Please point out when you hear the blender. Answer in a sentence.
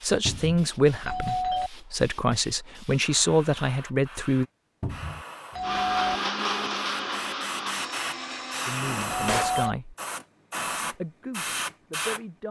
You can hear the blender from 5.6 to 8.8 s.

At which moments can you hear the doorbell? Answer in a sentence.
You can hear the doorbell from 1.0 to 1.7 s, from 5.5 to 6.2 s and from 9.1 to 9.8 s.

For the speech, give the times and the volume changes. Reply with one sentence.
You can hear the speech from 0.0 to 4.5 s, getting quieter then louder; briefly from 8.7 to 9.9 s; and briefly from 10.8 to 12.4 s.